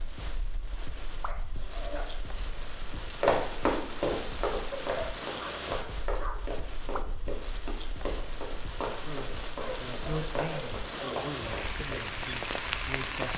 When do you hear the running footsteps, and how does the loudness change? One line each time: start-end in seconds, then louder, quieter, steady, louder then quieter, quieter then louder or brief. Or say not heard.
2.9-12.1 quieter.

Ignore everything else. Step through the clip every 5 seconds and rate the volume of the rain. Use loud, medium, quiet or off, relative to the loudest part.
medium, medium, loud.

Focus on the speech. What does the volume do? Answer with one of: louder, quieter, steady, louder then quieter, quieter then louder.
louder then quieter.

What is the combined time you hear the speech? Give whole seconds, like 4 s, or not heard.
4 s.